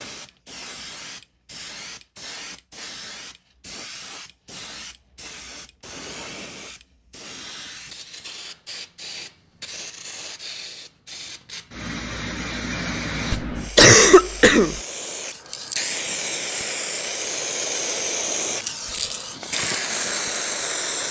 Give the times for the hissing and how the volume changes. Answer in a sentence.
The hissing can be heard from 0.0 to 21.0 s, getting louder.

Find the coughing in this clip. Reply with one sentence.
The coughing can be heard from 13.3 to 14.8 s.